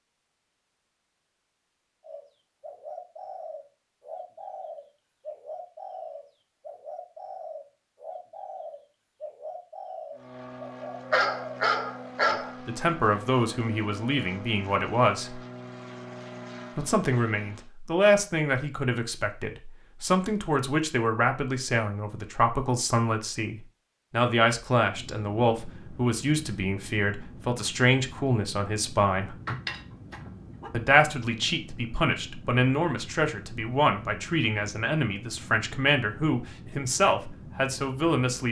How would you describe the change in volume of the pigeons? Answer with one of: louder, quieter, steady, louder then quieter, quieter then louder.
steady.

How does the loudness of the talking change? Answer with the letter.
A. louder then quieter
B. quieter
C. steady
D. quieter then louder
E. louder
C.